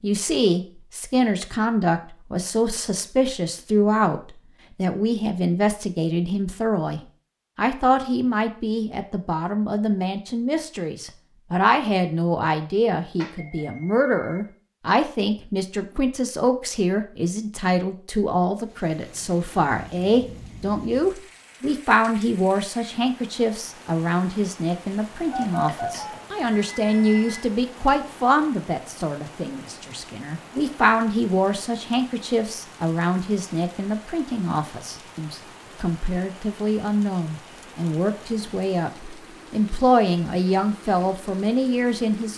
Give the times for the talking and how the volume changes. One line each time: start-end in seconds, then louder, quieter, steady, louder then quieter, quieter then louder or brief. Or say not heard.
0.0-42.3 steady.